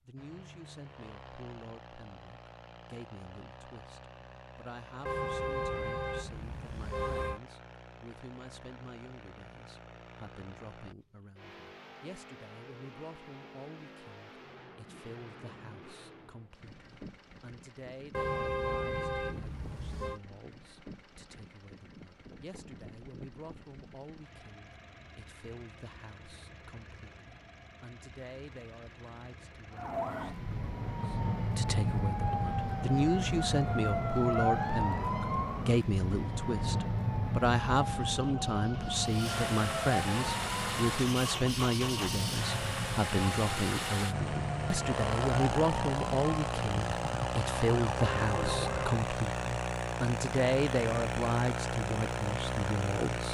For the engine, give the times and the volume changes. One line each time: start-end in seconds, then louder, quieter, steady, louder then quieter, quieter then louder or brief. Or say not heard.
0.0-53.2 louder.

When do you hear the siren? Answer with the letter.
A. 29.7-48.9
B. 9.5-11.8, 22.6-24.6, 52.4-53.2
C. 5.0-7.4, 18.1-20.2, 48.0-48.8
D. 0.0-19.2
A.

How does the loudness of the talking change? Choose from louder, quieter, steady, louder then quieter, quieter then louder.
louder.